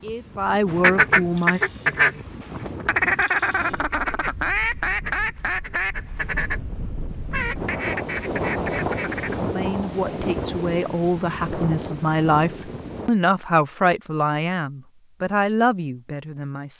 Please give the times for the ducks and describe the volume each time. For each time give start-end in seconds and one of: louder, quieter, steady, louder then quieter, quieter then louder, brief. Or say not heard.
0.7-9.4 quieter.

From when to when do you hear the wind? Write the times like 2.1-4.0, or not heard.
0.0-13.1.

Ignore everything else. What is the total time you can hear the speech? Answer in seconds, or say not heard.
9 s.